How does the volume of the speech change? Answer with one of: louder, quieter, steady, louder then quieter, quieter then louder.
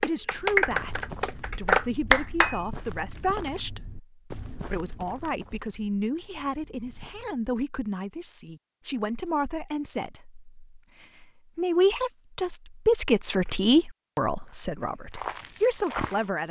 louder.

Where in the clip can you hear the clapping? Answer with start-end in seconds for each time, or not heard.
0.0-2.6.